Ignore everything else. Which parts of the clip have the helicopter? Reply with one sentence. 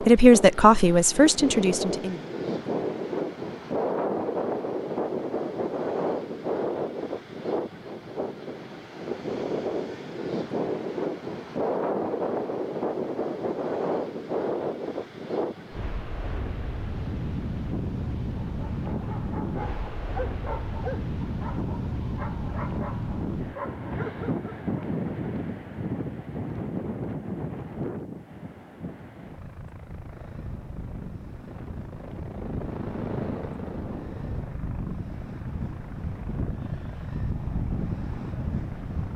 You can hear the helicopter from 29.1 to 39.1 s.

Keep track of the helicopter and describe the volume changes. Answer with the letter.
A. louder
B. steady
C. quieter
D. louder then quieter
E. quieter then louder
D.